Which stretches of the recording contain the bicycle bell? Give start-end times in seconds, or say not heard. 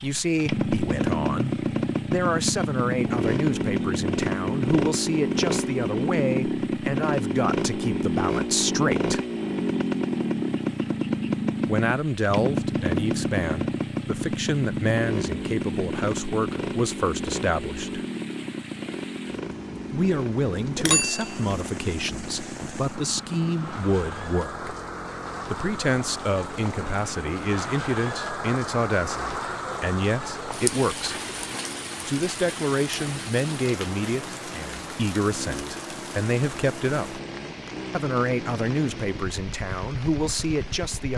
20.8-21.6.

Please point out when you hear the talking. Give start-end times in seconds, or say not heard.
0.0-9.2, 11.7-18.0, 19.9-24.8, 25.4-31.1, 32.0-37.2, 37.9-41.1.